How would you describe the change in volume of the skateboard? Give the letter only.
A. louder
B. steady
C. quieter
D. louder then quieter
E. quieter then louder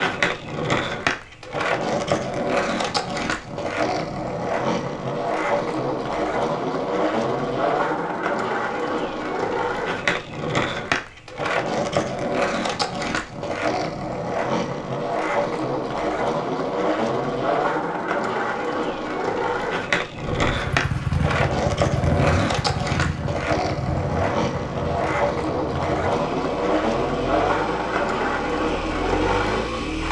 B.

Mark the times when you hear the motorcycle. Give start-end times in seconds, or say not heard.
20.4-30.0.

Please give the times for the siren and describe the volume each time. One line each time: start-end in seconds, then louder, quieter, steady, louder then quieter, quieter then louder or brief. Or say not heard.
not heard.